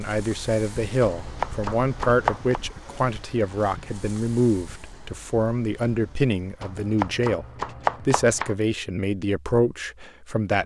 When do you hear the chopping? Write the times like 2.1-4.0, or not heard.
1.0-2.6, 6.6-8.6.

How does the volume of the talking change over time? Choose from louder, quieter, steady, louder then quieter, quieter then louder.
steady.